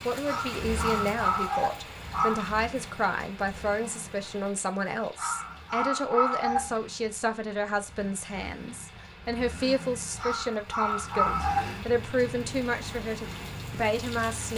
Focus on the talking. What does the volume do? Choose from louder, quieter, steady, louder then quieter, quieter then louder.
steady.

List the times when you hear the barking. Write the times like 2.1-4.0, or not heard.
0.2-2.5, 5.2-6.8, 10.2-11.8.